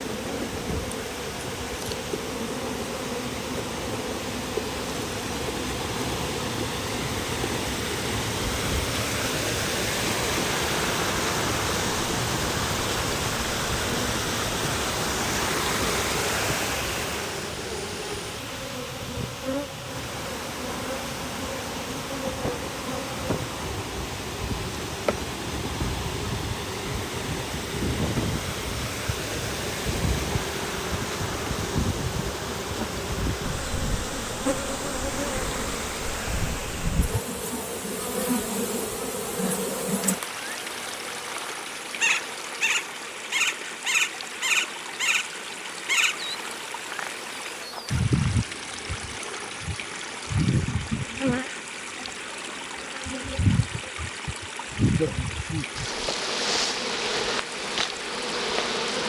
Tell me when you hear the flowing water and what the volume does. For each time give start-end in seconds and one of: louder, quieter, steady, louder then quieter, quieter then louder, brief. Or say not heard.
0.0-59.0 quieter.